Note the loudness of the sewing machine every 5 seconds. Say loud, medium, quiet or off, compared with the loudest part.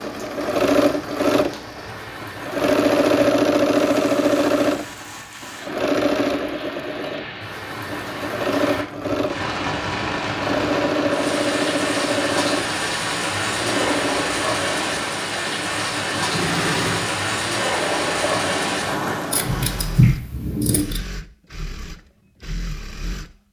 loud, medium, medium, medium, quiet.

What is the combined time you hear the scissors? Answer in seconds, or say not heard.
2 s.